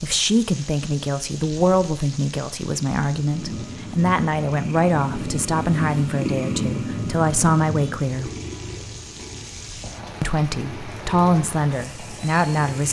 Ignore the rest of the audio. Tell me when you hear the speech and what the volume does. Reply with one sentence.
You can hear the speech from 0.0 to 8.3 s, at a steady volume; and briefly from 10.2 to 12.8 s.